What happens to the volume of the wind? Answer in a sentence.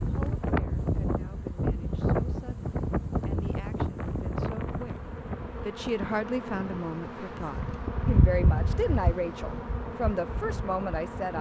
The volume of the wind goes down.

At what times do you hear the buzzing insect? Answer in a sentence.
You can hear the buzzing insect from 0.0 to 11.3 s.